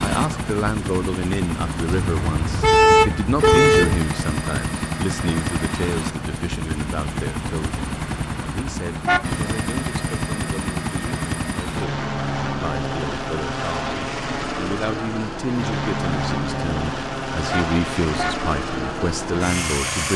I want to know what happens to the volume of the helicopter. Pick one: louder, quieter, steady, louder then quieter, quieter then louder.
steady.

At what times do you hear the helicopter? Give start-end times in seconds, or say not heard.
0.0-20.1.